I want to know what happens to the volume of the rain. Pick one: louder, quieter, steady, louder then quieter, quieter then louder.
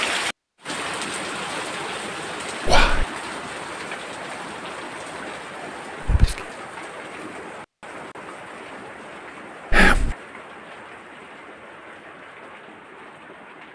quieter.